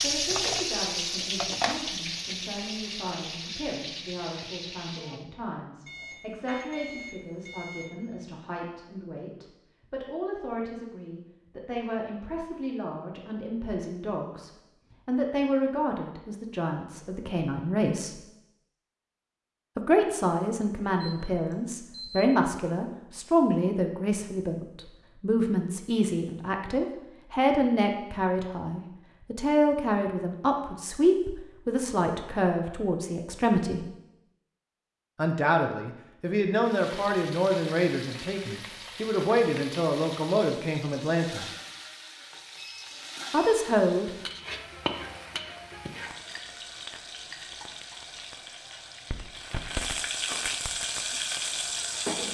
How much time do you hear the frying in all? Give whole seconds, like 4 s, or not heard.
21 s.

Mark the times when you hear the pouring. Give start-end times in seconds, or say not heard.
not heard.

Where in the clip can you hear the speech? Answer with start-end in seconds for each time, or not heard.
0.0-18.2, 19.8-33.9, 35.1-41.5, 43.3-44.1.